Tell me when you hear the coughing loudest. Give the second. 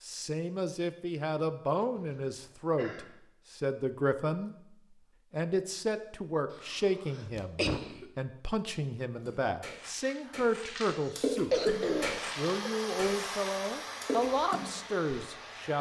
12 s.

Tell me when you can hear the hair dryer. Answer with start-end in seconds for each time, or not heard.
11.6-15.7.